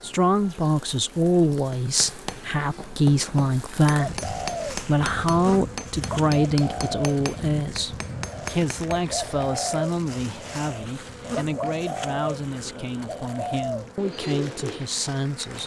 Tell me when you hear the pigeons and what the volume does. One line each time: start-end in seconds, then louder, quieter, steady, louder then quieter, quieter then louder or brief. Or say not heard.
4.0-14.9 steady.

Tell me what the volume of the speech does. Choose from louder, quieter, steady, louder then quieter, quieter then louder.
quieter.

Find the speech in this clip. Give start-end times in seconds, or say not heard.
0.0-15.6.